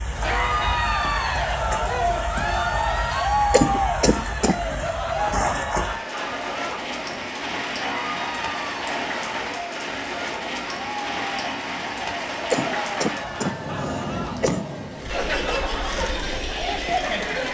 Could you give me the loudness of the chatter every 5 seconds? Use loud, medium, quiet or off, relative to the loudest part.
loud, medium, medium, loud.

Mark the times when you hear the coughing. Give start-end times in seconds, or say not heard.
3.1-4.5, 12.5-14.7.